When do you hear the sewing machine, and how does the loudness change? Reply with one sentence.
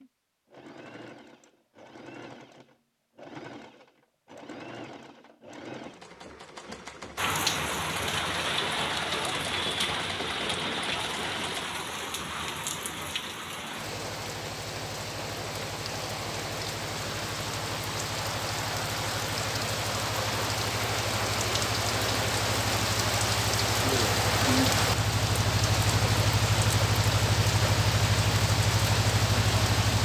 You can hear the sewing machine from 0.0 to 11.7 s, getting louder.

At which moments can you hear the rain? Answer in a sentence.
The rain can be heard from 7.2 to 30.0 s.